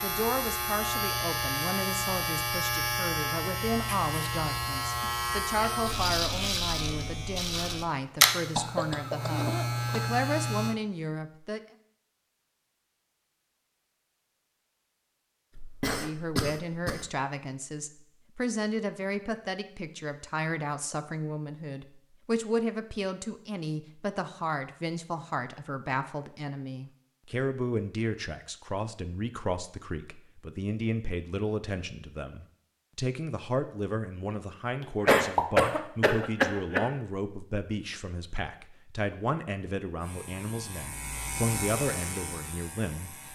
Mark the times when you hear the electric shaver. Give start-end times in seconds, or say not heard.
0.0-10.8, 40.0-43.3.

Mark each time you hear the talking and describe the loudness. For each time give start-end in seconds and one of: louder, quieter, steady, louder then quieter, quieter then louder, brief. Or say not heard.
0.0-11.6 steady
15.9-43.3 steady.